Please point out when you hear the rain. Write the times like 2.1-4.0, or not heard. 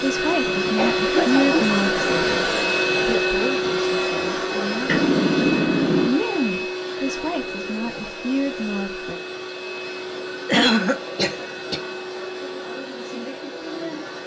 not heard.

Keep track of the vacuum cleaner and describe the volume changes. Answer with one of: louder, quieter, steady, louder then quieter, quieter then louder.
quieter.